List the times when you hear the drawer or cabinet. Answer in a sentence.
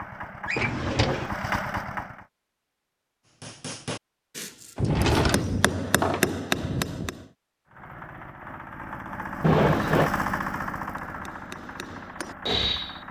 The drawer or cabinet can be heard from 0.5 to 1.3 s, from 4.8 to 6.3 s and from 9.4 to 10.1 s.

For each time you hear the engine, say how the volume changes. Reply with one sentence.
You can hear the engine briefly from 0.0 to 2.3 s; and from 7.7 to 13.0 s, getting louder then quieter.